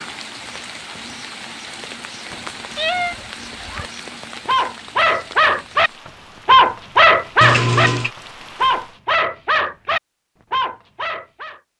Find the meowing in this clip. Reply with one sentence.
The meowing can be heard from 2.3 to 3.1 s and from 7.4 to 8.1 s.